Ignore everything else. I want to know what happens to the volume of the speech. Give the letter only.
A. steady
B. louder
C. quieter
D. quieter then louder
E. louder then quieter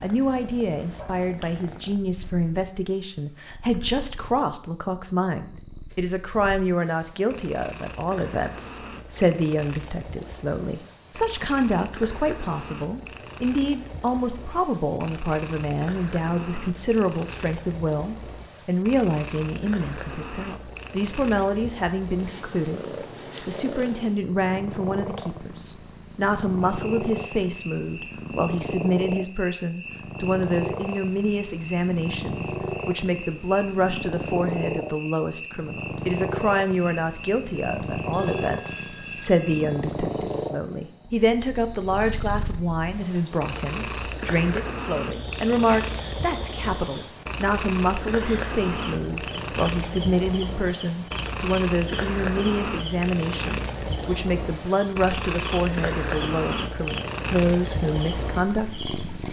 A.